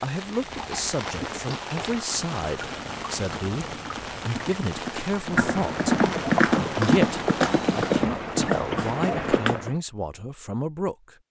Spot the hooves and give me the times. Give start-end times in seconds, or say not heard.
0.3-9.8.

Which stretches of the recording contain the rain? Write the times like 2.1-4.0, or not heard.
0.0-8.1.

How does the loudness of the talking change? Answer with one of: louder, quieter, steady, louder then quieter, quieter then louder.
steady.